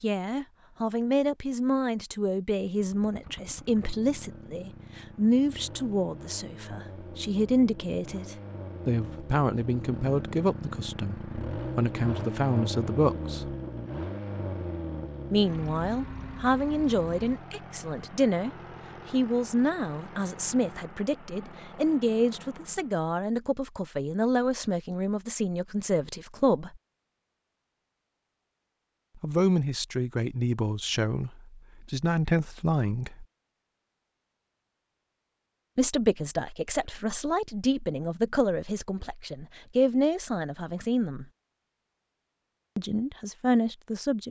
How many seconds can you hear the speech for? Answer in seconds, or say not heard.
36 s.